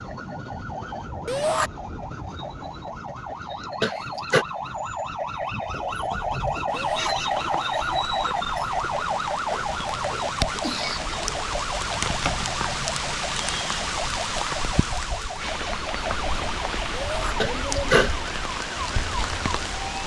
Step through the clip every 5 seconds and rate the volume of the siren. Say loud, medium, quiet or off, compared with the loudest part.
medium, loud, medium, medium.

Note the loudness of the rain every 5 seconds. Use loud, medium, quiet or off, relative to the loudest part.
off, medium, loud, loud.